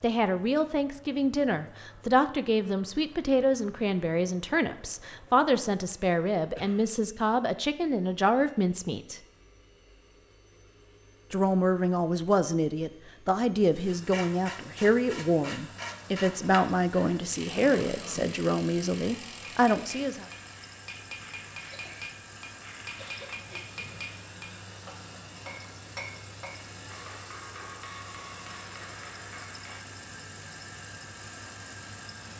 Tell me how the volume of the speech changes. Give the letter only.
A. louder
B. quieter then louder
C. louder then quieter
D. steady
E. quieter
D.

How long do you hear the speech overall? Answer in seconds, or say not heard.
18 s.